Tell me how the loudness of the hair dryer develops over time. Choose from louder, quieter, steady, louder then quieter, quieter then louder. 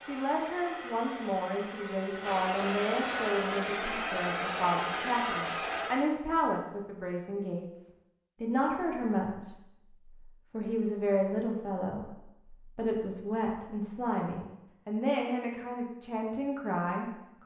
louder.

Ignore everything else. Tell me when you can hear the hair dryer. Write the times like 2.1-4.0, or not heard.
0.0-6.1.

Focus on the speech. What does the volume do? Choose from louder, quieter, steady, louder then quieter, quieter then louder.
steady.